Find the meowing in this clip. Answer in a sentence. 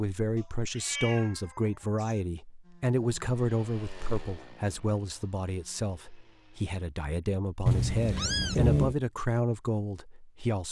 The meowing can be heard from 0.3 to 2.2 s and from 7.7 to 8.9 s.